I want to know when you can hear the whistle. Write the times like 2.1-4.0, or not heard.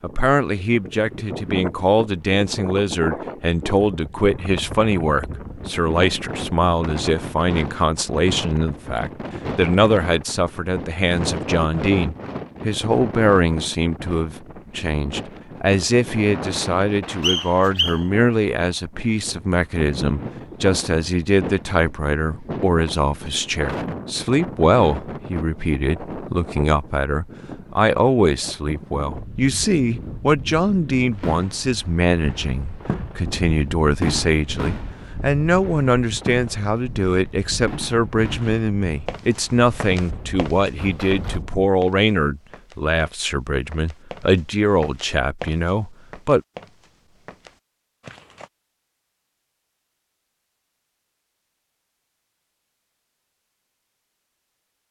17.2-18.0.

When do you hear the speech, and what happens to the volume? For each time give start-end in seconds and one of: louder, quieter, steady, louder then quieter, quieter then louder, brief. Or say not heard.
0.0-46.4 steady.